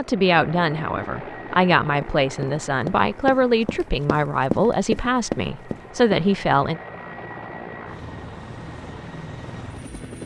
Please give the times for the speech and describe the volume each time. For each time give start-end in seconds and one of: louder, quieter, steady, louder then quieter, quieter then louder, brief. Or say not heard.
0.0-6.8 steady.